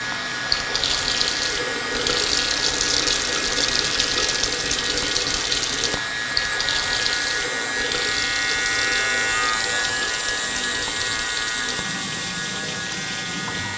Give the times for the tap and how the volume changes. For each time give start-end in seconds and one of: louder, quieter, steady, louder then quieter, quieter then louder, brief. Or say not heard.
0.0-13.7 quieter.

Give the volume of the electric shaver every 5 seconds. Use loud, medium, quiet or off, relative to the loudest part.
medium, loud, loud.